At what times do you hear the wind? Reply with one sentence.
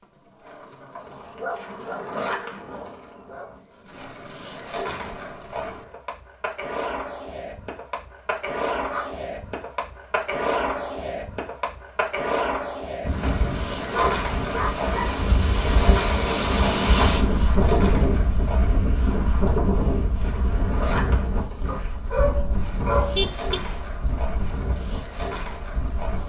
The wind can be heard from 13.0 to 26.2 s.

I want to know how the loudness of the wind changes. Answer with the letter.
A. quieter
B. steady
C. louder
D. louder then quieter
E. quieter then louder
D.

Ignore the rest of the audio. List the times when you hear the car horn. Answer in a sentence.
You can hear the car horn from 23.1 to 23.9 s.